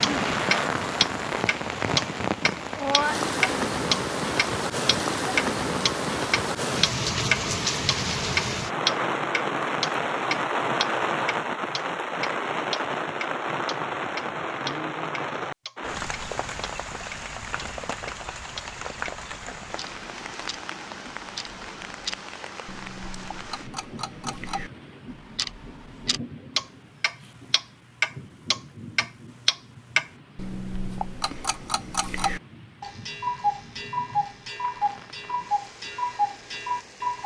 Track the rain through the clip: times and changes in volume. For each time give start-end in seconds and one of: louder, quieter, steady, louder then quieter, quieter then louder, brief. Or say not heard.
0.0-37.2 quieter.